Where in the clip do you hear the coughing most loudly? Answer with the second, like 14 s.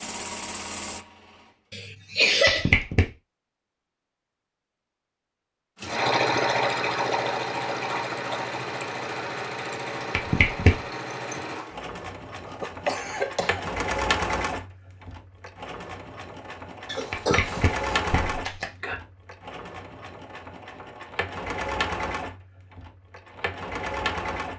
2 s.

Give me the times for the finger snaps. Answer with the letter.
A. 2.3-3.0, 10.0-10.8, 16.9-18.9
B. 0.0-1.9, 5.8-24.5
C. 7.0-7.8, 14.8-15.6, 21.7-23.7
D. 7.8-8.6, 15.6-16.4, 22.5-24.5
A.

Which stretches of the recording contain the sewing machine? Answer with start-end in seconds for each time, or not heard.
0.0-1.9, 5.8-24.5.